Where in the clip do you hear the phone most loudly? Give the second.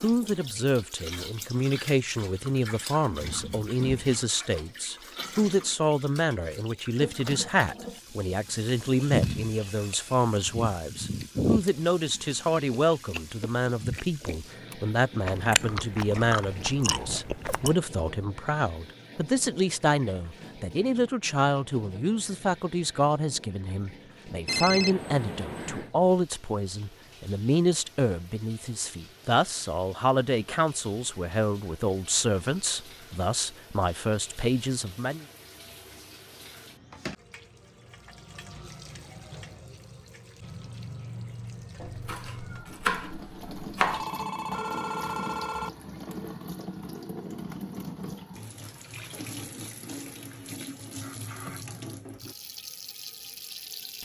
25 s.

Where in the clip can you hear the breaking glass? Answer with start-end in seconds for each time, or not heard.
not heard.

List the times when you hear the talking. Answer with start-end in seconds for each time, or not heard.
0.0-35.2.